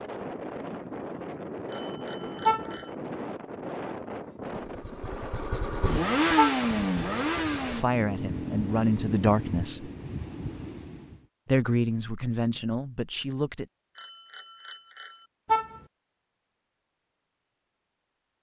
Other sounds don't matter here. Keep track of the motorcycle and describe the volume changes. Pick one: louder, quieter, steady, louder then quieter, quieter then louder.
louder then quieter.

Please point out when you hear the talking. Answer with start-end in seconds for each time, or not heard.
7.7-9.8, 11.4-13.7.